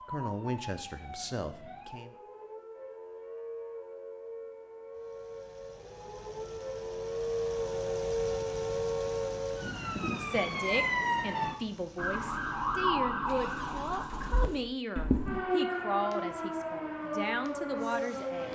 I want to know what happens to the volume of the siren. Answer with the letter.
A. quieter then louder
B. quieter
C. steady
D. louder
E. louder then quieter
D.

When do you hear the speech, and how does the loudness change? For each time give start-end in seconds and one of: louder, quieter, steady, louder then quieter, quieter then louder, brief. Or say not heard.
0.1-2.1 brief
10.2-18.5 steady.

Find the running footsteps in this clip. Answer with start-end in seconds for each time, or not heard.
not heard.